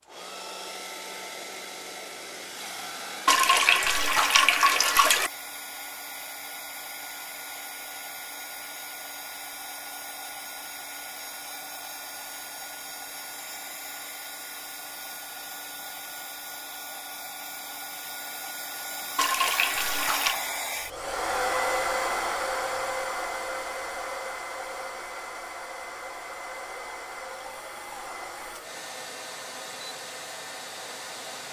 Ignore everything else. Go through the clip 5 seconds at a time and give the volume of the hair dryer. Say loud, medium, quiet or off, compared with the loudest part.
medium, medium, medium, medium, loud, medium, medium.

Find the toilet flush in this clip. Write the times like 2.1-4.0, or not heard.
3.2-5.3, 19.1-20.4.